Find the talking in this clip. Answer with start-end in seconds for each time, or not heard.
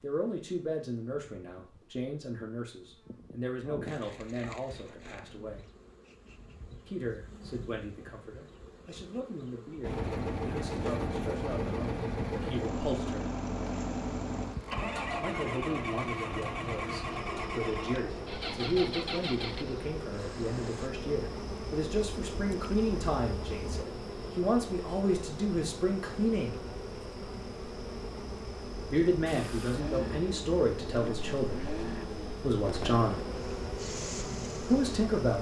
0.0-5.7, 6.8-13.3, 15.2-26.6, 28.9-33.2, 34.6-35.3.